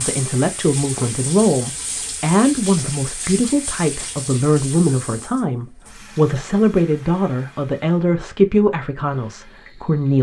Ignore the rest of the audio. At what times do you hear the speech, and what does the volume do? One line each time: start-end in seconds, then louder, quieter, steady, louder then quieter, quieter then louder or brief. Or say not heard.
0.0-10.1 steady.